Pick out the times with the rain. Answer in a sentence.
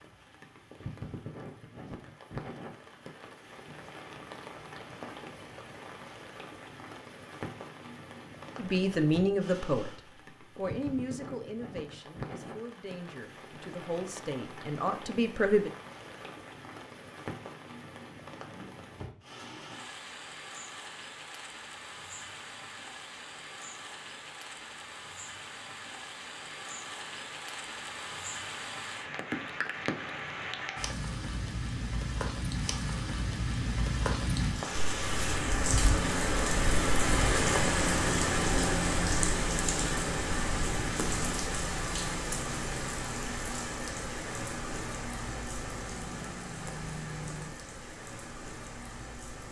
The rain can be heard from 0.0 to 49.4 s.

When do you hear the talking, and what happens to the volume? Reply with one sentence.
You can hear the talking briefly from 8.6 to 9.9 s; and from 10.6 to 15.7 s, getting quieter then louder.